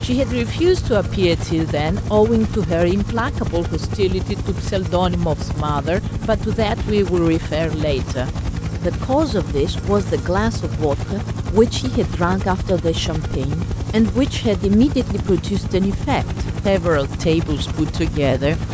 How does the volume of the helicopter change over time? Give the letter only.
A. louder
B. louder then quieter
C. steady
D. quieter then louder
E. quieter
C.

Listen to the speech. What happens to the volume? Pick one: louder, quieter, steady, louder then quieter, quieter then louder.
steady.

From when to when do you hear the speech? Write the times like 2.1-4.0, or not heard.
0.0-18.6.